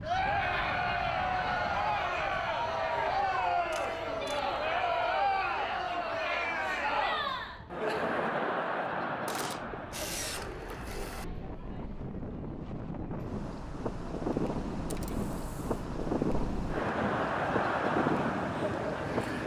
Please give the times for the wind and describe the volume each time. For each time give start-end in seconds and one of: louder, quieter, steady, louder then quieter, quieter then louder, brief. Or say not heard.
0.0-19.4 quieter then louder.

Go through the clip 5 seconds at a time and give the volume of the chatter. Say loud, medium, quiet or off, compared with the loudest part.
loud, loud, quiet, loud.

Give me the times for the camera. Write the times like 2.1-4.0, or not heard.
3.7-4.4, 9.2-11.2, 14.9-15.7.